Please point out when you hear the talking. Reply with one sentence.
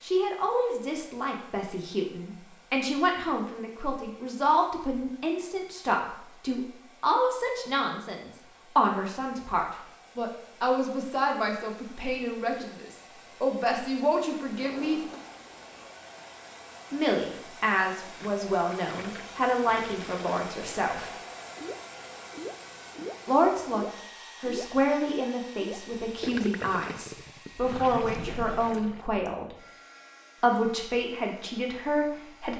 You can hear the talking from 0.0 to 15.0 s, from 16.9 to 21.1 s, from 23.2 to 29.6 s and from 30.4 to 32.5 s.